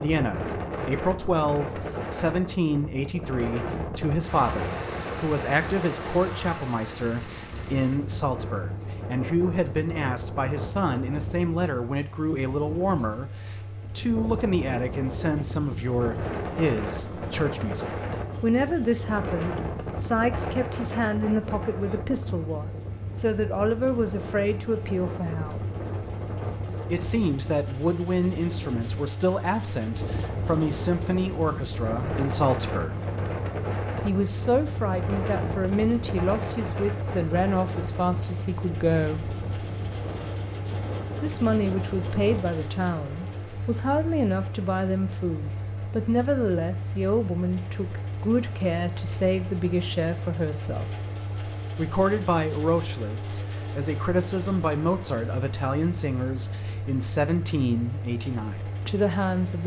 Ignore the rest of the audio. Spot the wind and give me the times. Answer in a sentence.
The wind can be heard from 0.0 to 42.5 s.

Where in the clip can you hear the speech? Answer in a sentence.
You can hear the speech from 0.0 to 25.6 s, from 26.9 to 33.0 s, from 34.0 to 39.4 s, from 41.2 to 50.9 s and from 51.8 to 59.6 s.